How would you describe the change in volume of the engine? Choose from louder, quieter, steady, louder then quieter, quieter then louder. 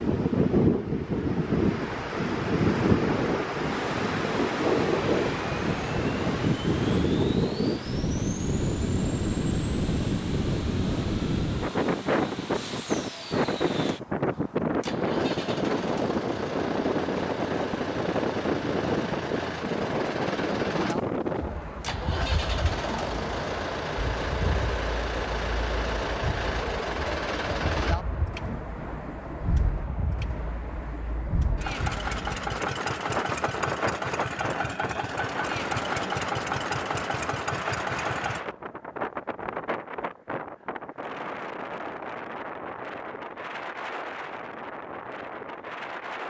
louder.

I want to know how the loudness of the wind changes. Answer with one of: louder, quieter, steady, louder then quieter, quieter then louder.
quieter.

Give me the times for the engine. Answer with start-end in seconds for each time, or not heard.
3.9-38.4.